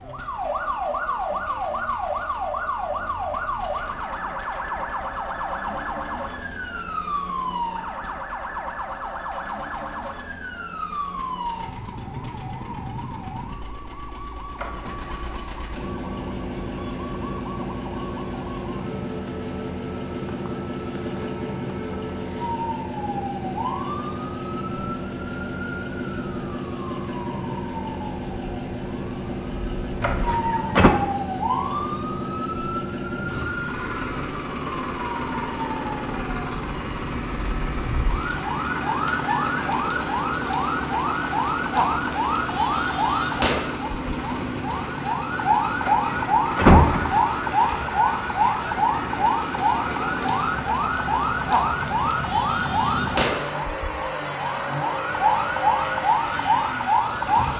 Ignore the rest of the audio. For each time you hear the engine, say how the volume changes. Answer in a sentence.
The engine can be heard from 0.0 to 57.5 s, getting louder.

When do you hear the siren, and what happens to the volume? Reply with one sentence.
You can hear the siren from 0.0 to 57.5 s, getting quieter then louder.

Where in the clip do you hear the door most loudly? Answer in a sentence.
The loudest moment of the door is at 47 seconds.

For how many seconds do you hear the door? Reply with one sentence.
You can hear the door for 3 seconds altogether.